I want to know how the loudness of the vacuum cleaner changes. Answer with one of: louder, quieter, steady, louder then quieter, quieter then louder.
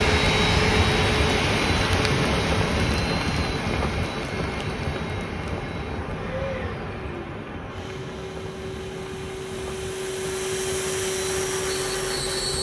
quieter then louder.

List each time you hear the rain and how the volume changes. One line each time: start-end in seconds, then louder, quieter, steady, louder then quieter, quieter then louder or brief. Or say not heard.
0.0-12.5 quieter.